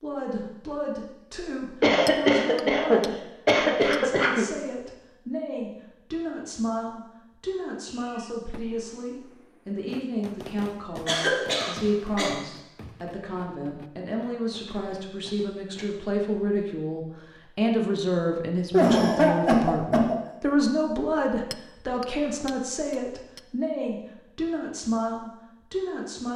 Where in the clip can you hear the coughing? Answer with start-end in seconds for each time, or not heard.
1.8-4.5, 11.1-12.4, 18.7-20.2.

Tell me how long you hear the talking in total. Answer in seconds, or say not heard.
26 s.